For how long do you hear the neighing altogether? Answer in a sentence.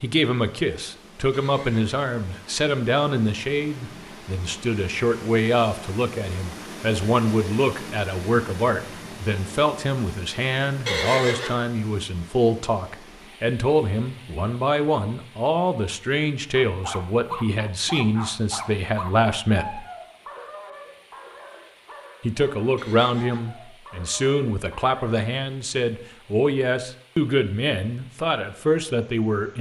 The neighing can be heard for 2 seconds in total.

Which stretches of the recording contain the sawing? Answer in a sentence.
You can't hear the sawing here.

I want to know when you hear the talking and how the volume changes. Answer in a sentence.
You can hear the talking from 0.0 to 19.9 s, at a steady volume; and from 22.2 to 29.5 s, at a steady volume.